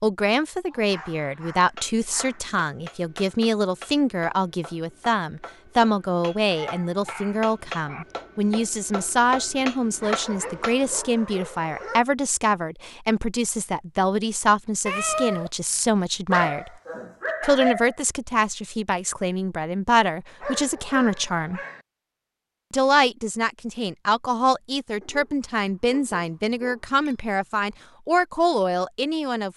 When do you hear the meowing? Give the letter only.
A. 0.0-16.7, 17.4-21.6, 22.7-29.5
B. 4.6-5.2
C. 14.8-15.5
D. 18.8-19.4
C.